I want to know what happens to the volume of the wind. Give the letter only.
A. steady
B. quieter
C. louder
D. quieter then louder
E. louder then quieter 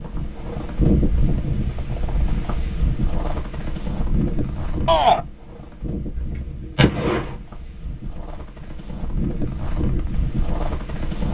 D.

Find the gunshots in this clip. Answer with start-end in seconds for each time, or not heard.
6.2-7.3.